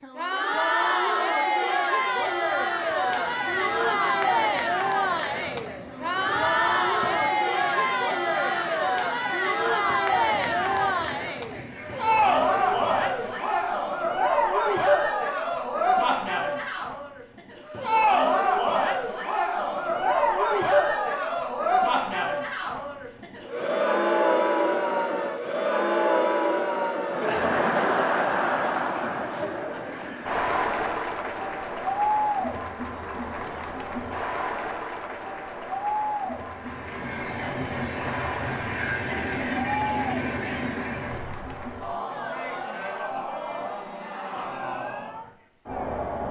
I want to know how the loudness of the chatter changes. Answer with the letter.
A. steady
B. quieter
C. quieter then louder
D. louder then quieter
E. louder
B.